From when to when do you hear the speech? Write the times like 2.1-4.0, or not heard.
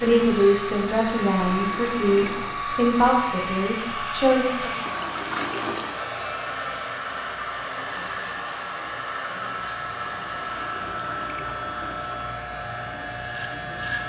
0.0-4.7.